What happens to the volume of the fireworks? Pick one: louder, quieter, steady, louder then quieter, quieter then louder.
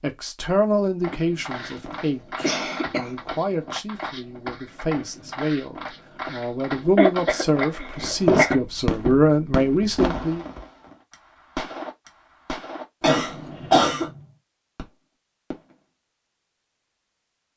quieter.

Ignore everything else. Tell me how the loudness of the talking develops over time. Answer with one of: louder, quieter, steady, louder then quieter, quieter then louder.
quieter then louder.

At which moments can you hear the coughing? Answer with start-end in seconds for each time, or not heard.
1.5-3.1, 6.8-8.6, 13.0-14.1.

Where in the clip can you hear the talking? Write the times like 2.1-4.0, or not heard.
0.0-10.4.